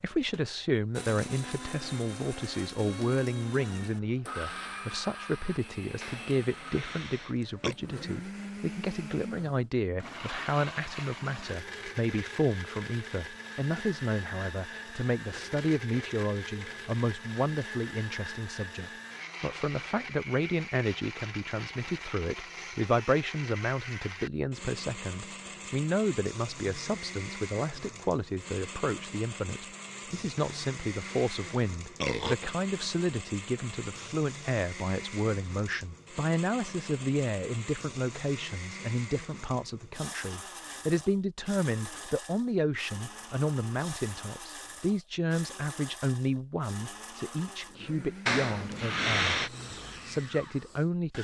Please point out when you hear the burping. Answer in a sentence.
The burping can be heard from 6.0 to 7.8 s, from 30.4 to 32.4 s and from 48.2 to 49.5 s.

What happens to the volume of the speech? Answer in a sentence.
The volume of the speech stays about the same.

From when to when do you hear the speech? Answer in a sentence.
The speech can be heard from 0.0 to 51.1 s.